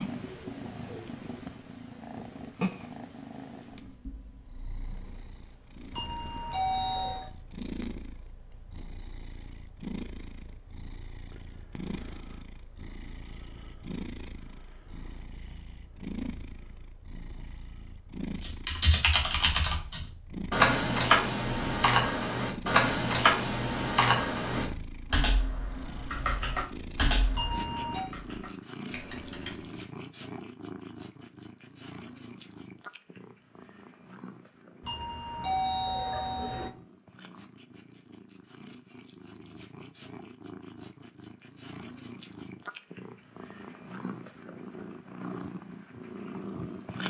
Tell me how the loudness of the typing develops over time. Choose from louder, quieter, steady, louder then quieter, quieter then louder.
quieter.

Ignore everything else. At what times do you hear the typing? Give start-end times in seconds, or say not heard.
18.4-29.9.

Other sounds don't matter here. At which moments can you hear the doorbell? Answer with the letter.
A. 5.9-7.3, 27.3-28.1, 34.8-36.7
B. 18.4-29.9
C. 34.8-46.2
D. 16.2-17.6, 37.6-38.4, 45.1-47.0
A.